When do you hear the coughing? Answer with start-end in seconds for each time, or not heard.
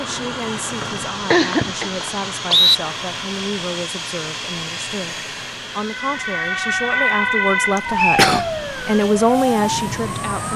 1.3-1.9, 7.8-8.4.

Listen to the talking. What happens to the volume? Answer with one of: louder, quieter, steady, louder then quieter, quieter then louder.
louder.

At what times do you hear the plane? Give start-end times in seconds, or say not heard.
0.0-10.5.